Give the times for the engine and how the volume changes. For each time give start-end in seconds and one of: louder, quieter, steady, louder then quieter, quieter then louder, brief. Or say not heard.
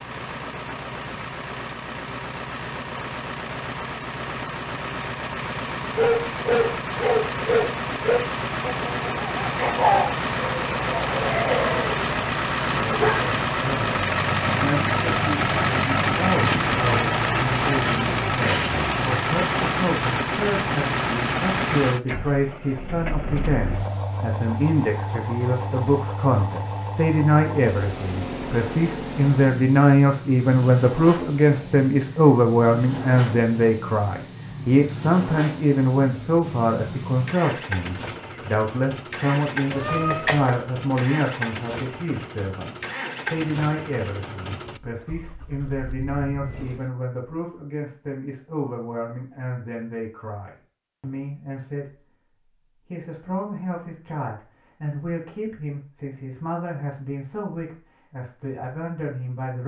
0.0-46.9 louder then quieter.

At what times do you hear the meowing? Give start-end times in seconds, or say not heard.
39.7-40.5.